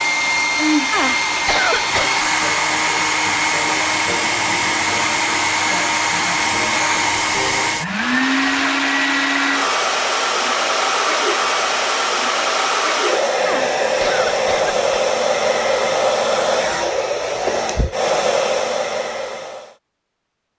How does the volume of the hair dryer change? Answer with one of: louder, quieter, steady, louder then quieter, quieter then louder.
steady.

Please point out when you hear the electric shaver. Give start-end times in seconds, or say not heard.
not heard.